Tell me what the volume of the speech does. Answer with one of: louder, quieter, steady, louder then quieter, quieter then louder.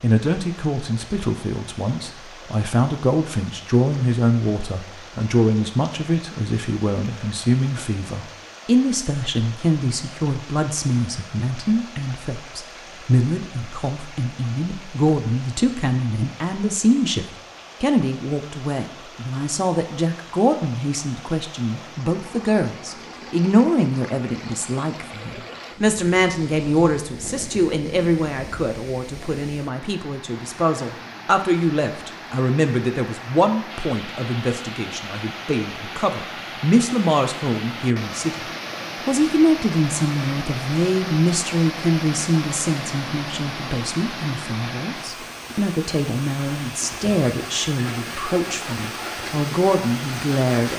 steady.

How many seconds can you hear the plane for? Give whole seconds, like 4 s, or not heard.
not heard.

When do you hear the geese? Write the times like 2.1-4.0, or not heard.
not heard.